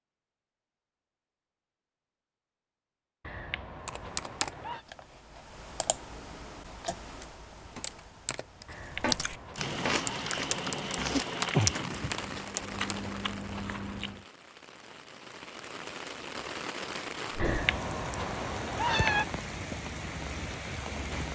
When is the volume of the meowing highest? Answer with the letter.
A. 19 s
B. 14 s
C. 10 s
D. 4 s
A.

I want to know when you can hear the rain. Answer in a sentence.
The rain can be heard from 9.6 to 21.3 s.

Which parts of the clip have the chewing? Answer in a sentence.
You can hear the chewing from 8.9 to 14.2 s.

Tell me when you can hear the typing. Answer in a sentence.
The typing can be heard from 3.9 to 13.0 s.